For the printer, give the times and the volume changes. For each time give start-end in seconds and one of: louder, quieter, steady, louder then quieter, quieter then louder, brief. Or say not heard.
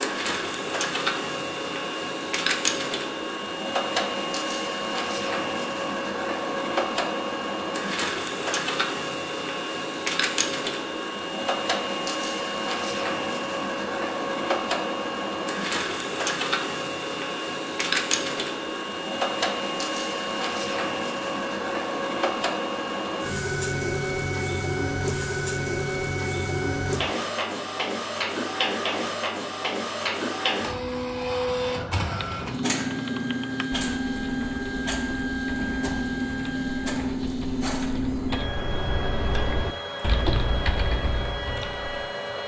0.0-42.4 steady.